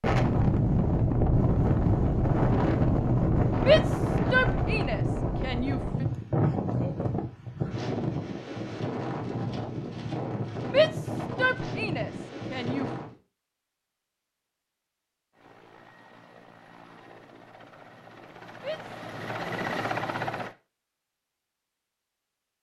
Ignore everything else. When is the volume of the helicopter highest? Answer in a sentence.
The volume of the helicopter peaks at 20 seconds.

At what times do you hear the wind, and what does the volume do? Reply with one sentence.
You can hear the wind from 0.0 to 13.2 s, getting quieter.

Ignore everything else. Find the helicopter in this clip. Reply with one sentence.
You can hear the helicopter from 15.3 to 20.6 s.